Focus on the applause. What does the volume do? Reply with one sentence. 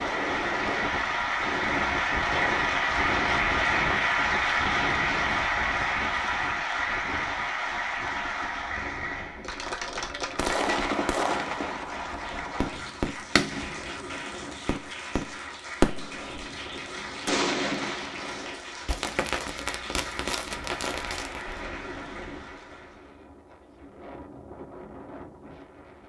The loudness of the applause goes down.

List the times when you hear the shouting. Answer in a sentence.
You can't hear the shouting here.